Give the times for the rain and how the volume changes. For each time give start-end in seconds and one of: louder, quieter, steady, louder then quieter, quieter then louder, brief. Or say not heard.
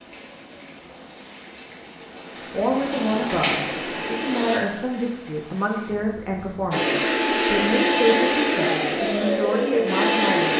0.0-6.8 louder then quieter.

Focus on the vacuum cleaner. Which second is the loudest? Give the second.
8 s.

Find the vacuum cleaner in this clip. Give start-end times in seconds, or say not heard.
2.9-4.6, 6.7-10.5.